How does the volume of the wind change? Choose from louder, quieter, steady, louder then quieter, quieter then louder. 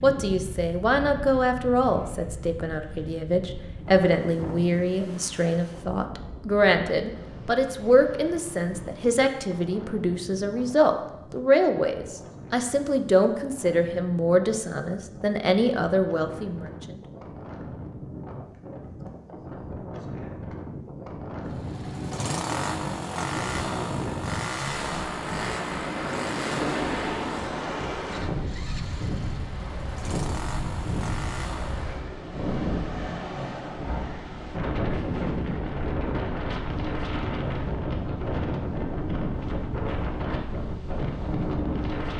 louder.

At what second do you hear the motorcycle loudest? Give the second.
23 s.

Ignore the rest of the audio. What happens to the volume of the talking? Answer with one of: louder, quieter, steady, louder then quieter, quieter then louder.
steady.